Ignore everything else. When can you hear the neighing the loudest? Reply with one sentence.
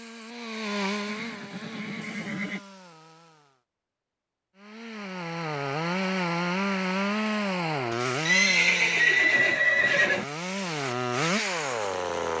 The volume of the neighing peaks at 9 seconds.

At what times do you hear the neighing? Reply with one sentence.
You can hear the neighing from 1.1 to 2.6 s and from 8.2 to 10.2 s.